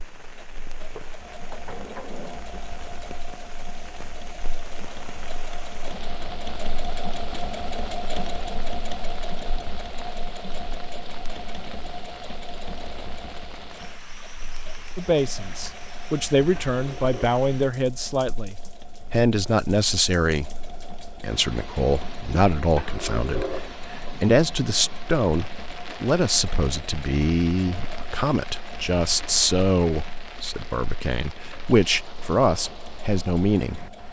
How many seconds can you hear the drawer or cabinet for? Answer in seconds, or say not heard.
4 s.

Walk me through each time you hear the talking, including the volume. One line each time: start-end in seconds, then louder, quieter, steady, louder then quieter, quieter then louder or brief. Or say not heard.
14.9-33.8 steady.